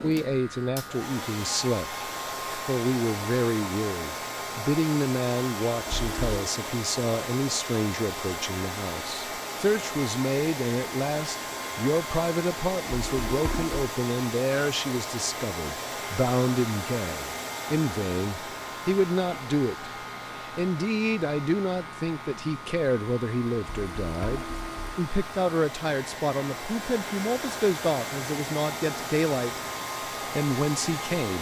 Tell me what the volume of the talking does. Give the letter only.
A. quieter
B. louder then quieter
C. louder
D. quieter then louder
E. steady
E.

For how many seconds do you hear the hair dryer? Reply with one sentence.
The hair dryer can be heard for 31 seconds in total.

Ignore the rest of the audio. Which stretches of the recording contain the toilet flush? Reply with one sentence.
The toilet flush can be heard from 5.8 to 6.4 s, from 12.8 to 13.9 s and from 23.6 to 25.0 s.